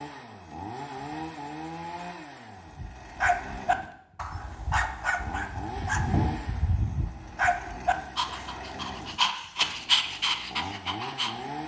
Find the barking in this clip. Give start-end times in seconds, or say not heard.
2.8-11.3.